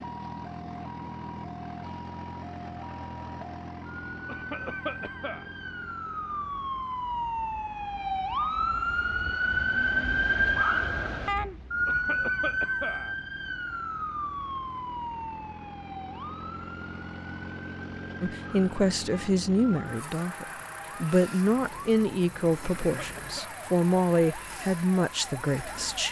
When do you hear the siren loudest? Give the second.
10 s.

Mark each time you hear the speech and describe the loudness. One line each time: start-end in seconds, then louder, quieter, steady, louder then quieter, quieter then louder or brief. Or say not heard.
18.2-26.0 steady.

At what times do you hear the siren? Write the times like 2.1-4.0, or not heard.
0.0-26.0.